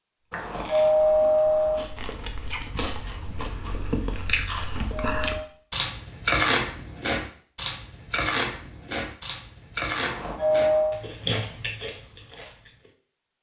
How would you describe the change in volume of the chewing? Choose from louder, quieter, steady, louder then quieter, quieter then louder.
louder then quieter.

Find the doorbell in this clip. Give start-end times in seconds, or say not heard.
0.3-1.9, 4.8-5.5, 10.0-11.0.